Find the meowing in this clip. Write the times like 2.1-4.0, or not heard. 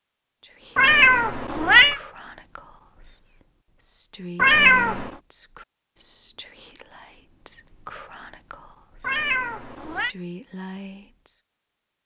0.8-2.0, 4.3-5.1, 9.0-10.2.